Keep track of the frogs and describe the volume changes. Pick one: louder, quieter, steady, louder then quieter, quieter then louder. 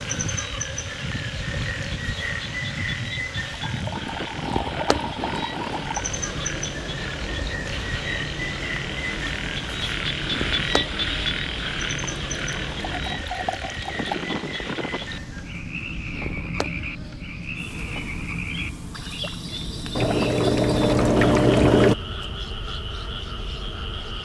louder then quieter.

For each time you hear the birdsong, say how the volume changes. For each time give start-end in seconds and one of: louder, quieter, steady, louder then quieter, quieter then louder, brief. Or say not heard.
not heard.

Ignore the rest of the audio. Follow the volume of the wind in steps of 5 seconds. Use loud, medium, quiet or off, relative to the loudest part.
loud, loud, loud, loud, medium.